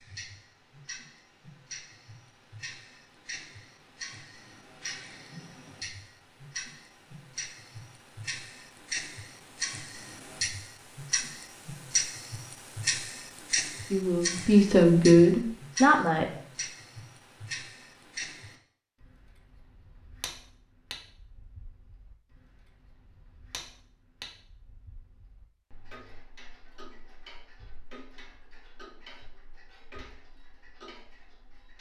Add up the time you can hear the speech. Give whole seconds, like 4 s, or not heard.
2 s.